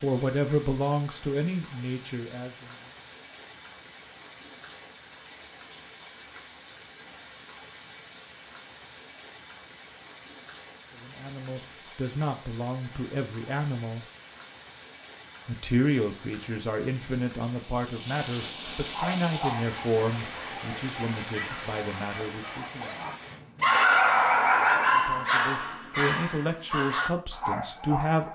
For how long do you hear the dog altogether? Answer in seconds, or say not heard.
9 s.